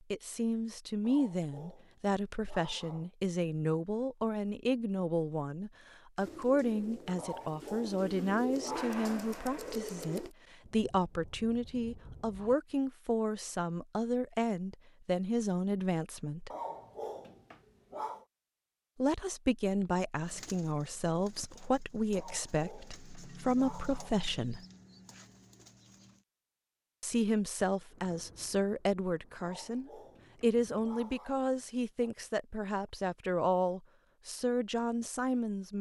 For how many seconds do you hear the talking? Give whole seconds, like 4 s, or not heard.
31 s.